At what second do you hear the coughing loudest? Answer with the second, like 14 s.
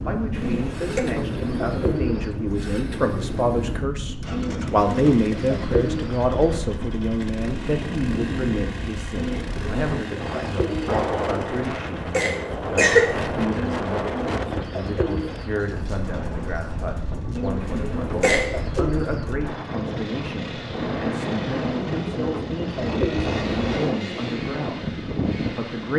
13 s.